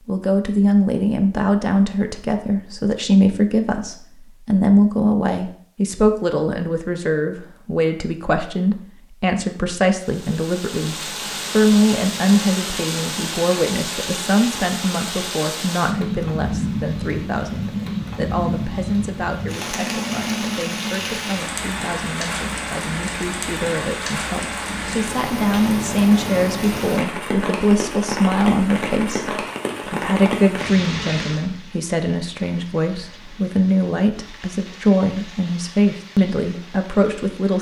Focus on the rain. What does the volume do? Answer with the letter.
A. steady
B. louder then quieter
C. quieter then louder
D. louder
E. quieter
E.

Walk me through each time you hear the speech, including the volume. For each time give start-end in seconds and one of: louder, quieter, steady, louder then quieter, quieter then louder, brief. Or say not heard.
0.1-37.5 quieter then louder.